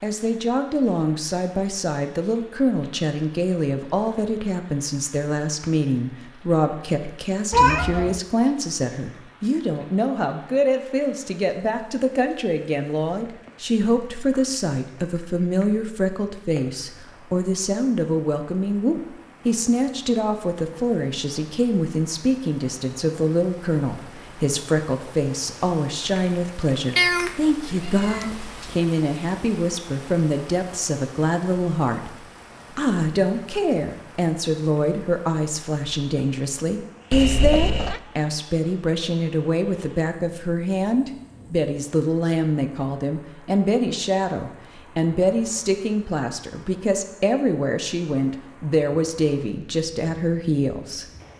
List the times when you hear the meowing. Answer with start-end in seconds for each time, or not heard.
7.5-8.2, 26.9-28.8, 37.1-38.0.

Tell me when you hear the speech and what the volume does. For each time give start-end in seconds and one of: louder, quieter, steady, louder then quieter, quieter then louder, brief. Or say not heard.
0.0-51.0 steady.